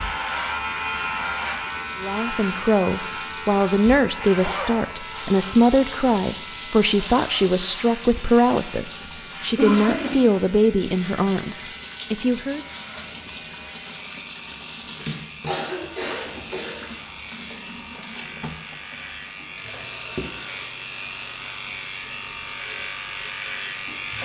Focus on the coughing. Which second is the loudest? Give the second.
10 s.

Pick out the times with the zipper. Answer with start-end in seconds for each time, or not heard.
4.3-4.8, 16.0-17.1.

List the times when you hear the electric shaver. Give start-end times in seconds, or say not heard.
0.0-24.2.